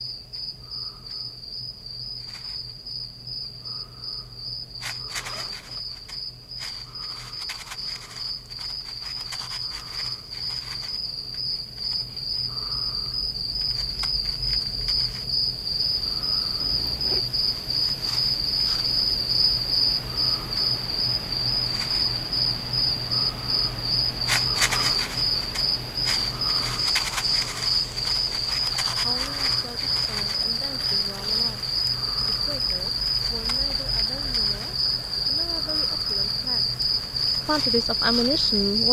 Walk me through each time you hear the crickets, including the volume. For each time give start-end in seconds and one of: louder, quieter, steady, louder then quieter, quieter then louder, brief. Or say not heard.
0.0-38.8 louder.